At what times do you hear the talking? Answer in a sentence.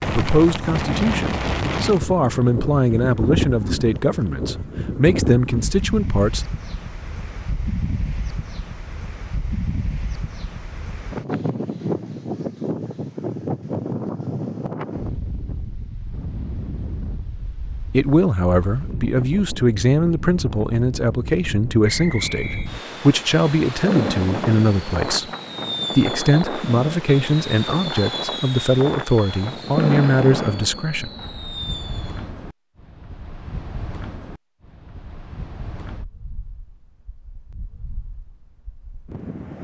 You can hear the talking from 0.1 to 6.5 s, from 17.9 to 25.3 s and from 25.9 to 31.1 s.